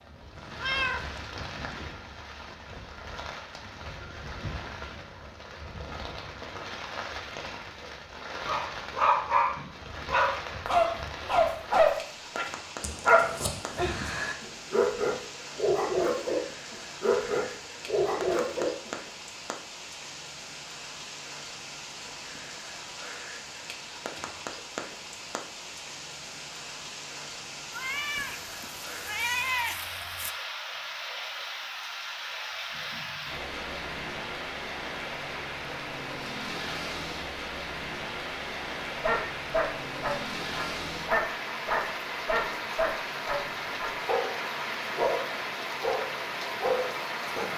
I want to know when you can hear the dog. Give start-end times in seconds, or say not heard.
8.4-18.9, 39.0-47.5.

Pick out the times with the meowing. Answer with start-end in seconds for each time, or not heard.
0.3-1.8, 27.7-30.3.